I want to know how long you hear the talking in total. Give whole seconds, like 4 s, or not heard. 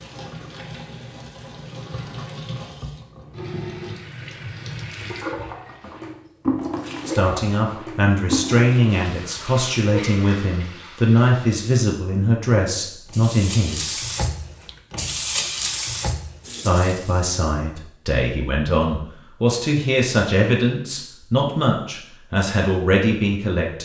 14 s.